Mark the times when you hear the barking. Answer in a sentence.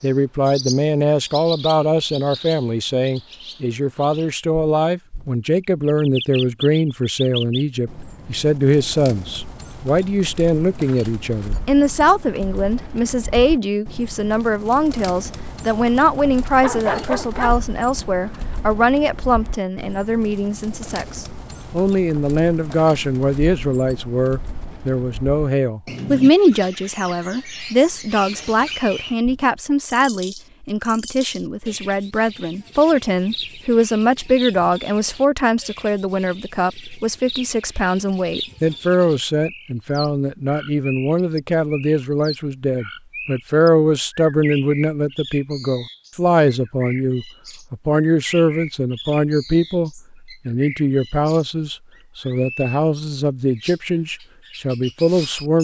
You can hear the barking from 16.1 to 17.6 s.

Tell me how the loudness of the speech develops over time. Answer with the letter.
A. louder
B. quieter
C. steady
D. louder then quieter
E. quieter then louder
C.